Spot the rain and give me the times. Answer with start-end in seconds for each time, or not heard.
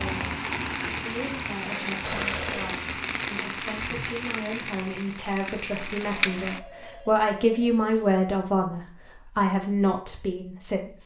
0.0-6.6.